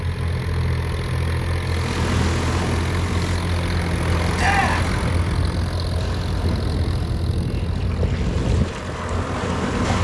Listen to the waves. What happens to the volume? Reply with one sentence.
The loudness of the waves goes down, then up.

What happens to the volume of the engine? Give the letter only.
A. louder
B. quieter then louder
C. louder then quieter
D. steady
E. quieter
D.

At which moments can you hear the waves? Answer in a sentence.
You can hear the waves from 1.6 to 9.9 s.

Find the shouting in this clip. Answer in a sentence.
You can hear the shouting from 4.3 to 4.9 s.